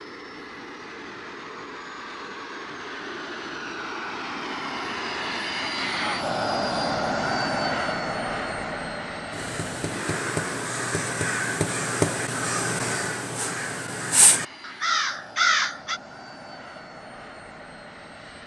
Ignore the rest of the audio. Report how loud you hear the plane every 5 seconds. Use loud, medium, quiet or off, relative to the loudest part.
medium, loud, medium, quiet.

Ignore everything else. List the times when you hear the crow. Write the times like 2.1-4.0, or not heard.
9.3-16.0.